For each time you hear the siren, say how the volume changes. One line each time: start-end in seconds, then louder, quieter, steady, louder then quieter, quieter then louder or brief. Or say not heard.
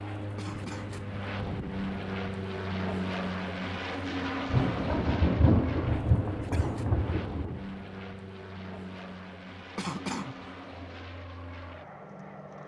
not heard.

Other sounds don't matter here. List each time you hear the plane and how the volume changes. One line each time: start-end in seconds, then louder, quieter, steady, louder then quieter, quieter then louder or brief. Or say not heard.
0.0-12.6 quieter.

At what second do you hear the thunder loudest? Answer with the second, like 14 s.
5 s.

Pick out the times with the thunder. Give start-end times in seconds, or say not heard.
4.5-7.6.